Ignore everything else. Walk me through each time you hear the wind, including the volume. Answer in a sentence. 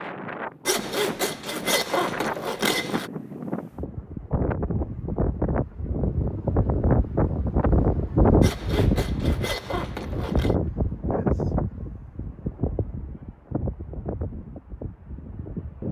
You can hear the wind from 0.0 to 15.8 s, getting louder then quieter.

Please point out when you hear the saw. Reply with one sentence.
You can hear the saw from 0.7 to 3.1 s and from 8.4 to 10.6 s.